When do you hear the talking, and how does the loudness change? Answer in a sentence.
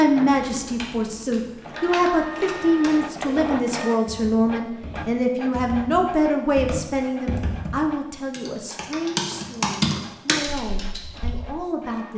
You can hear the talking from 0.0 to 12.1 s, getting quieter.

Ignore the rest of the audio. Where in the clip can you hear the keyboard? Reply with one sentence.
You can hear the keyboard from 0.2 to 11.4 s.